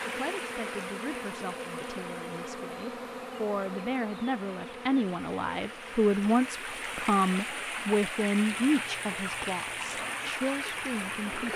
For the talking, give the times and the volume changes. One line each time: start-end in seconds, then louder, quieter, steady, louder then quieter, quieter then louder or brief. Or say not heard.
0.0-11.4 louder then quieter.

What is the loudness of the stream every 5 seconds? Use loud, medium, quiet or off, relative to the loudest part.
medium, loud, loud.